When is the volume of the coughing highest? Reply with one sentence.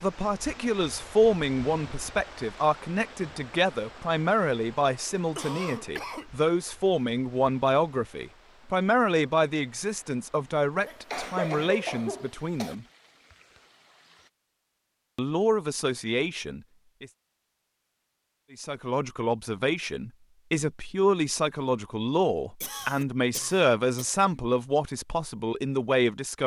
The loudest moment of the coughing is at 12 seconds.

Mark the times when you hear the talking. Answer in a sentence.
You can hear the talking from 0.0 to 12.8 s, from 15.2 to 17.1 s and from 18.5 to 26.4 s.